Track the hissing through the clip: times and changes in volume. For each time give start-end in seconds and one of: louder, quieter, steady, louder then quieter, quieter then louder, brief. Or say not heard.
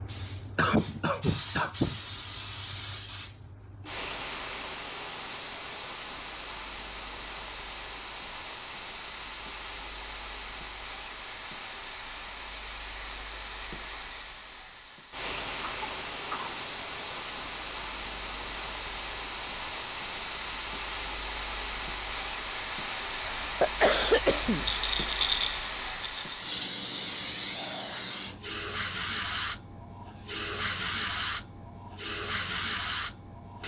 0.0-33.6 louder.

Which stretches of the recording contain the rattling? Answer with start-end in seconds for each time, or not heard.
24.6-26.4.